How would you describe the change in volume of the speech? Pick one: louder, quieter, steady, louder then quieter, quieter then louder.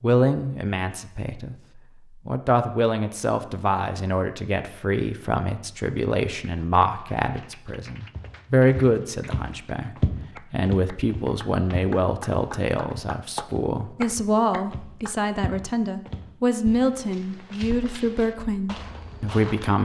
steady.